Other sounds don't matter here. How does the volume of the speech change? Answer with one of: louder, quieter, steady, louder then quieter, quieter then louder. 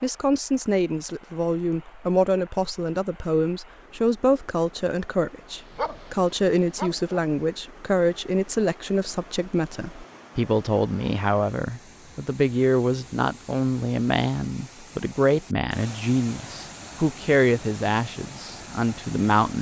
steady.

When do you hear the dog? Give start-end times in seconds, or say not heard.
5.7-7.2.